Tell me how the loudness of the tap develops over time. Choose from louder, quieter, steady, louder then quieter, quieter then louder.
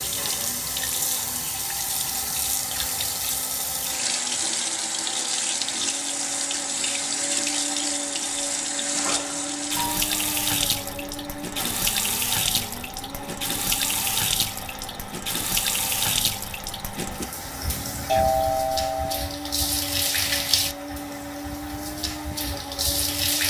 steady.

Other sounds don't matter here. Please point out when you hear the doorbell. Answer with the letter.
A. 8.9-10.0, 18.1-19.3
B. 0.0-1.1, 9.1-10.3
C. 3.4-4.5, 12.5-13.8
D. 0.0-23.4
A.